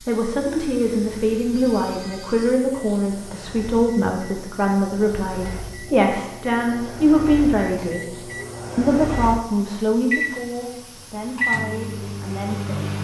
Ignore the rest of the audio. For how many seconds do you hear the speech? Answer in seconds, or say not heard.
13 s.